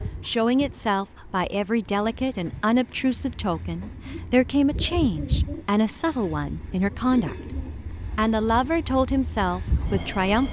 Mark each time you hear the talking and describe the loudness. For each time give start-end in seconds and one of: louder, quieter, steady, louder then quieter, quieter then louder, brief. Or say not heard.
0.2-10.4 steady.